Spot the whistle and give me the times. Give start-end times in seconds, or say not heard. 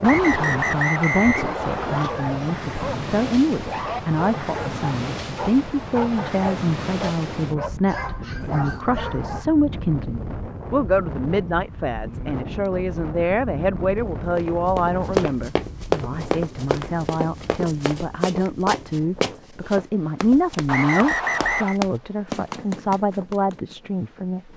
0.0-2.0, 20.6-21.8.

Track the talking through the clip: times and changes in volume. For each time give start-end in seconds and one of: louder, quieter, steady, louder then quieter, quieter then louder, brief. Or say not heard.
0.0-24.4 steady.